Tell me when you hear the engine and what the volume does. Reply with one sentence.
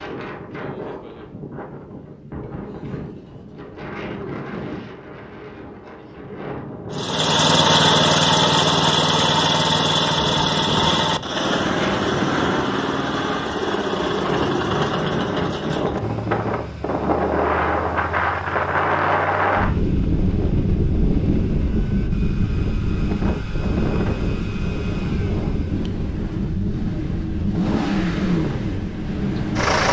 You can hear the engine from 6.9 to 29.8 s, getting quieter then louder.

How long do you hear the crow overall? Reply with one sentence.
You can't hear the crow here.